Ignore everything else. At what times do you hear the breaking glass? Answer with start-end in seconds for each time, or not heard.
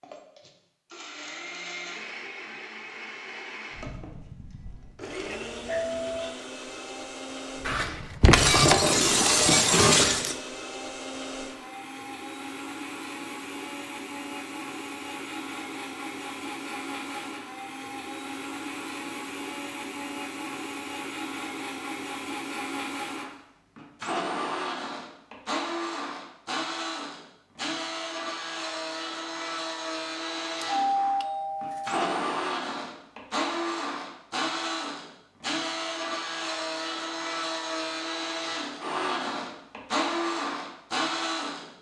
7.7-10.3.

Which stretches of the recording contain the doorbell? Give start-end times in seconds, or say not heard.
5.2-6.3, 30.6-32.0.